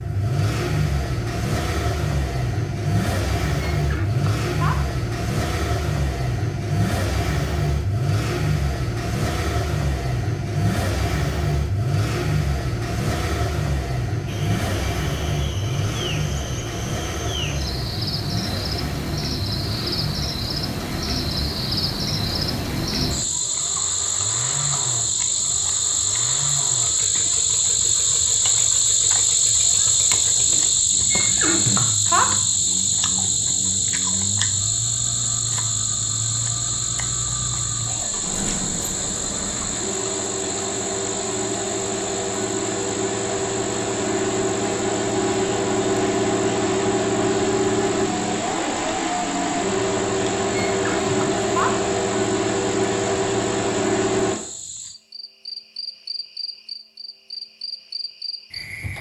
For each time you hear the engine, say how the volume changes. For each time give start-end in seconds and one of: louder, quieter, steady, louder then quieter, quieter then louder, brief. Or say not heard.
0.0-54.4 quieter then louder.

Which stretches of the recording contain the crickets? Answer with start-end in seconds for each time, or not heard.
14.2-58.9.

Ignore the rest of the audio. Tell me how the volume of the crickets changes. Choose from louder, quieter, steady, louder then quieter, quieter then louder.
louder then quieter.